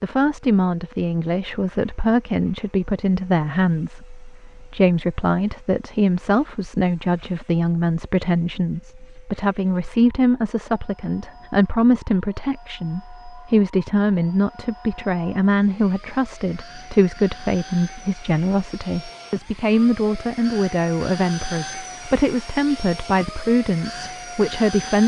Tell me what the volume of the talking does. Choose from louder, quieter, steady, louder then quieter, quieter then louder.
steady.